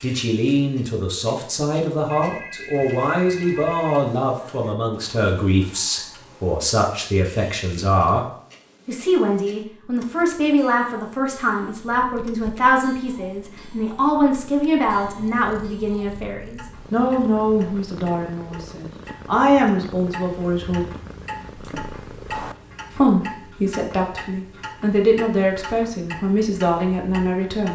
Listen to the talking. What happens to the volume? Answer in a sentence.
The volume of the talking stays about the same.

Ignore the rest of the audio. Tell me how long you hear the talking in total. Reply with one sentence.
You can hear the talking for 25 seconds altogether.